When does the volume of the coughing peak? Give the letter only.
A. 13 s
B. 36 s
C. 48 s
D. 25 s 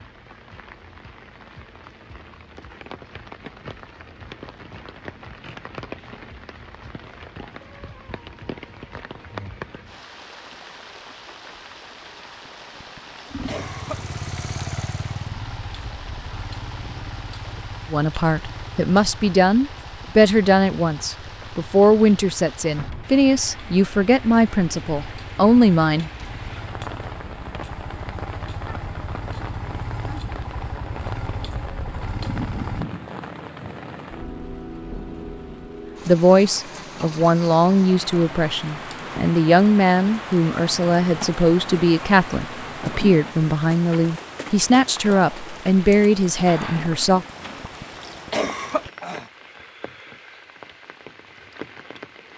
C.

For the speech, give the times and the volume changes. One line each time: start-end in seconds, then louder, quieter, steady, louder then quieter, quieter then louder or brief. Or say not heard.
17.9-26.1 steady
36.0-47.2 steady.